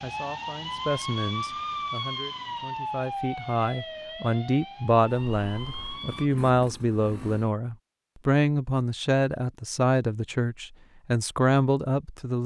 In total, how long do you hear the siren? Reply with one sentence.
You can hear the siren for 6 seconds altogether.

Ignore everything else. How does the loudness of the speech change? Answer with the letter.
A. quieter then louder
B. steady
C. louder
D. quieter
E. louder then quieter
C.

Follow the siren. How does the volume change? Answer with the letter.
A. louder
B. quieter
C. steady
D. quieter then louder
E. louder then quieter
B.